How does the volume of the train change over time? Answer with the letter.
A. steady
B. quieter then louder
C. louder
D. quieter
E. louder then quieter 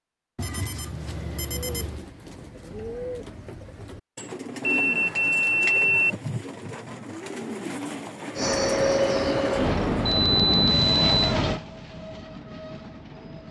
D.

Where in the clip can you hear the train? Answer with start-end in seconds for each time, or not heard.
8.3-13.4.